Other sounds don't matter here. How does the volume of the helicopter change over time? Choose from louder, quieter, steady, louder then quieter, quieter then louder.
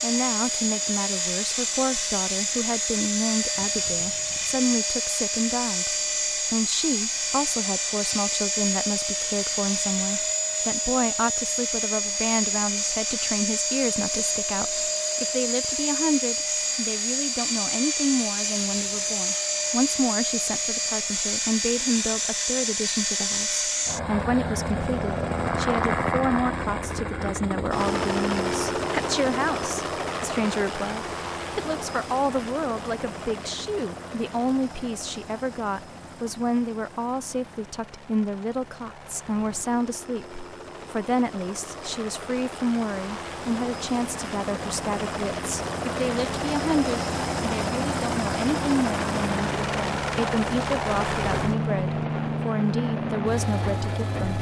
quieter then louder.